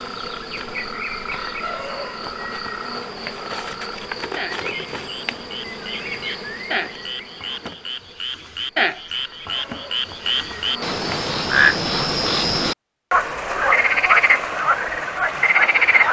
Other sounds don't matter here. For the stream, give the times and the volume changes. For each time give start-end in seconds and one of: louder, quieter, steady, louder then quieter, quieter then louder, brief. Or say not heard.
not heard.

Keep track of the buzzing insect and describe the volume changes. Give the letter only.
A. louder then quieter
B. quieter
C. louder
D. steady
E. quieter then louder
B.